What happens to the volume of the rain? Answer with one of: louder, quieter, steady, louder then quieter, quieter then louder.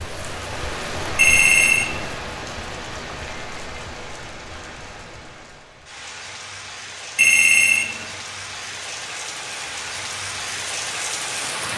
quieter then louder.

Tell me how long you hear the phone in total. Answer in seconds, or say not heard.
2 s.